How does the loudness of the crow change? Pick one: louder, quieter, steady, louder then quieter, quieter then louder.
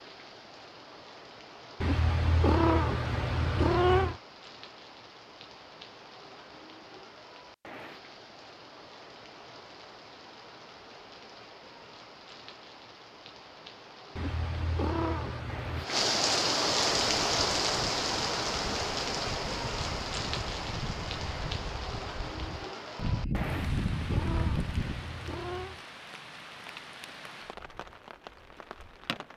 louder.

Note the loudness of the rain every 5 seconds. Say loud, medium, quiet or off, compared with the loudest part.
quiet, quiet, quiet, loud, medium, quiet.